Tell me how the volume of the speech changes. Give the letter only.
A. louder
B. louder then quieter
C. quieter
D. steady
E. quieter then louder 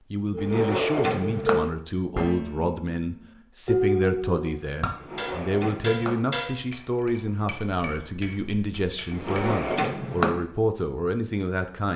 D.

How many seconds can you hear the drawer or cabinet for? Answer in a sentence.
The drawer or cabinet can be heard for 4 seconds in total.